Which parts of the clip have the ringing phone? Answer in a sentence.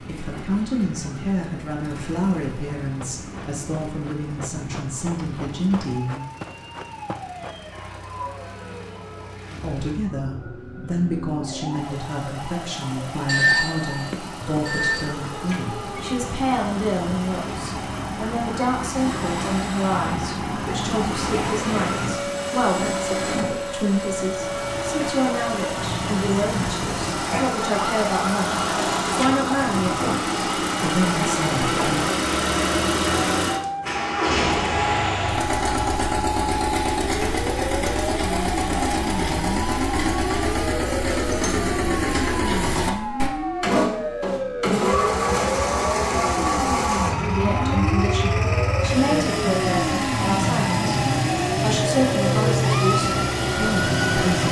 You can hear the ringing phone from 13.2 to 15.1 s.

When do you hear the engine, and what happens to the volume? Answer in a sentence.
You can hear the engine from 0.0 to 54.4 s, getting louder.